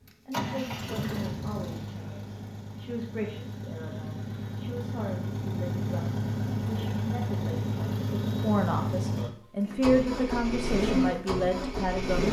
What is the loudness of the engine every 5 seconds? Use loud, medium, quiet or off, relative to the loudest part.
medium, loud, loud.